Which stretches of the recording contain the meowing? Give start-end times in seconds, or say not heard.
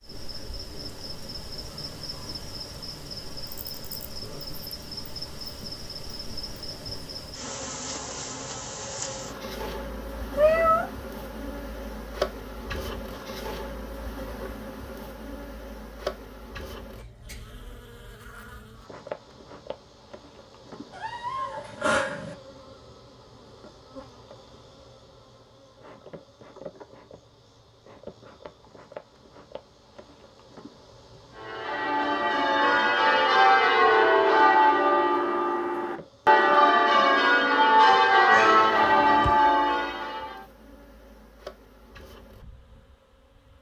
10.3-10.8, 20.9-22.4, 38.3-39.4.